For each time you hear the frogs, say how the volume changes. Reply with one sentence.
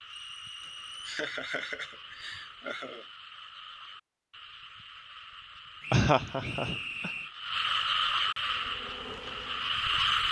The frogs can be heard from 0.0 to 10.2 s, getting louder.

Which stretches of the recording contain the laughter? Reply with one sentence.
The laughter can be heard from 0.6 to 3.0 s and from 5.9 to 7.1 s.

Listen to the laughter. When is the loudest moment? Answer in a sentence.
The loudest moment of the laughter is at 6 seconds.